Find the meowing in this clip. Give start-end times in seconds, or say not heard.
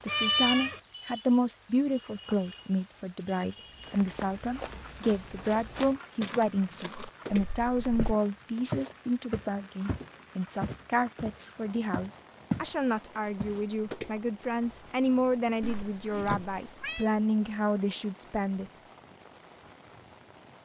0.1-0.8, 7.3-8.2, 15.6-17.1.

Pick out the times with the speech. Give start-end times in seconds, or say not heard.
0.0-18.8.